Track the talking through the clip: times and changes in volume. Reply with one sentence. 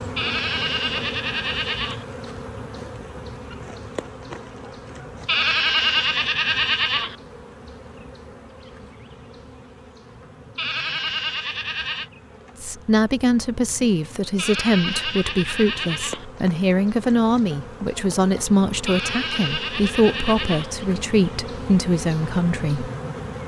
You can hear the talking from 12.6 to 22.9 s, at a steady volume.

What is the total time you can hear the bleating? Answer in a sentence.
You can hear the bleating for 9 seconds altogether.